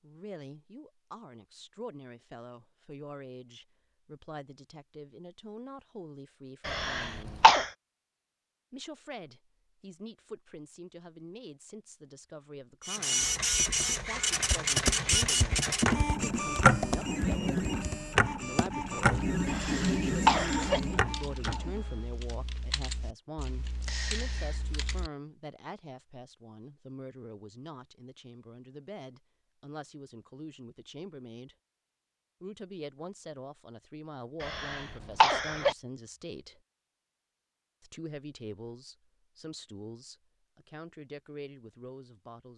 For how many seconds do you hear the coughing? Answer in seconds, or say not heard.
4 s.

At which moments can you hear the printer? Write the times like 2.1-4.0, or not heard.
12.8-22.1.